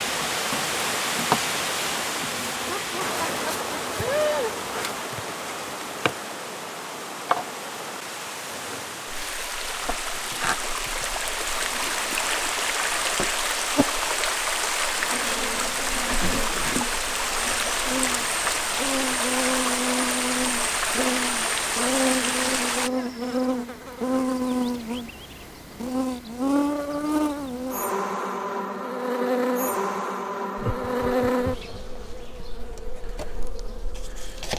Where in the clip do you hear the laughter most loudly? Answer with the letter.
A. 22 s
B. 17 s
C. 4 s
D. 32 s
C.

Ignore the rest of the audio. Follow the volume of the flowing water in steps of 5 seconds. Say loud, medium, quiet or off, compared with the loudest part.
loud, medium, loud, loud, loud, off, off.